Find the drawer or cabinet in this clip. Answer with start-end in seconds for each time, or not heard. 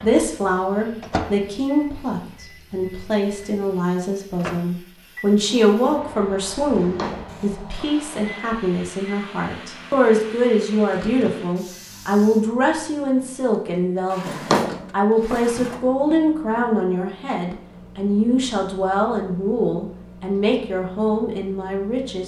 6.6-8.2, 14.1-15.8.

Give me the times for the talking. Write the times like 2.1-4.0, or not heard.
0.0-22.2.